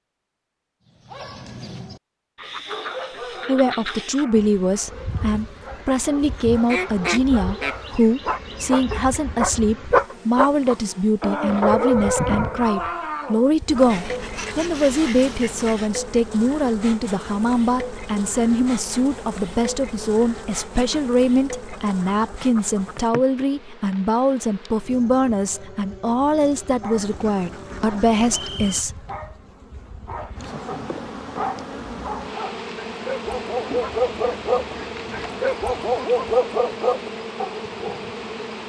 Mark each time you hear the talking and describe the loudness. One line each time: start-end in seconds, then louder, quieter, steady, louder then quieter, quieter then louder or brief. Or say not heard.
3.5-28.9 steady.